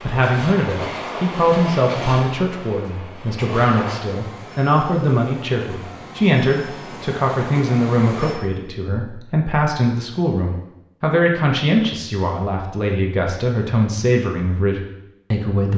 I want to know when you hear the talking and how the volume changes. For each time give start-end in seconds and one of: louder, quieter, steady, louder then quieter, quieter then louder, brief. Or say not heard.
0.0-15.7 steady.